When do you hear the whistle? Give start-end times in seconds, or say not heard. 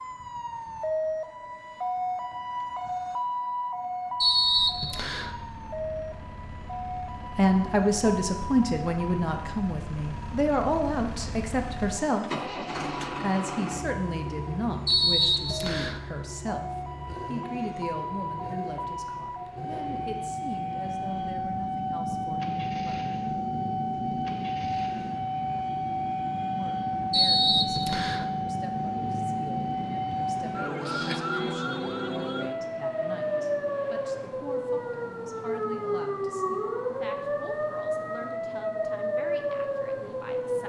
4.2-5.3, 14.8-16.0, 27.1-28.2.